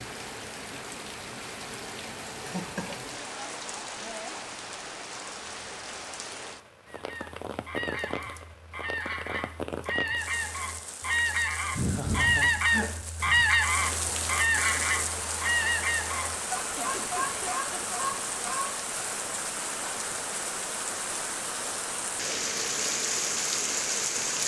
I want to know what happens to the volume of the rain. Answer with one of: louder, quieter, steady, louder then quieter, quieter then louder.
louder.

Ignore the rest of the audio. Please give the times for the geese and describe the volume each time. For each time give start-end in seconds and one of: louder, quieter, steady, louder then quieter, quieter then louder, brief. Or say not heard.
6.8-18.8 louder then quieter.